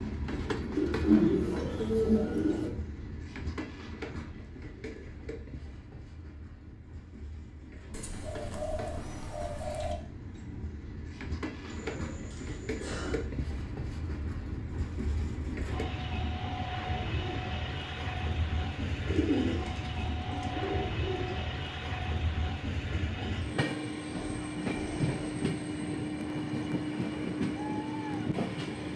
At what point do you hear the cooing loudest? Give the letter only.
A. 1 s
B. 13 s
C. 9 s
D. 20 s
A.